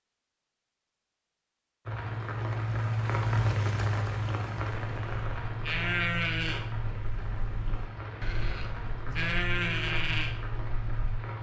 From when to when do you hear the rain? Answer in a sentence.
The rain can be heard from 1.9 to 11.3 s.